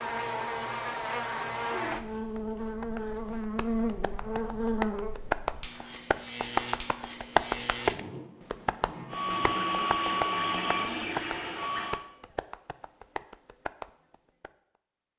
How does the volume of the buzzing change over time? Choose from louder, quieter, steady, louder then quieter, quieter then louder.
quieter.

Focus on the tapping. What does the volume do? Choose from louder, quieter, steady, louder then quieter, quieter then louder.
louder then quieter.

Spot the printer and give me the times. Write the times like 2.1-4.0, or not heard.
9.1-12.0.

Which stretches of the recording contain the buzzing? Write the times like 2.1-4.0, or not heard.
0.0-11.8.